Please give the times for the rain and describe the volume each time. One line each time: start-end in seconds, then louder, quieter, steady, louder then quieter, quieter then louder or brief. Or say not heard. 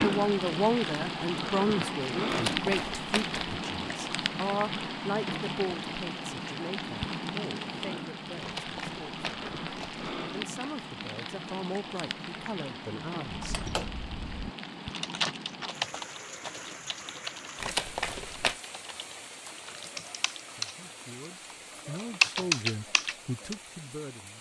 0.0-24.3 quieter.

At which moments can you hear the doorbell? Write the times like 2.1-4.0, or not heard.
not heard.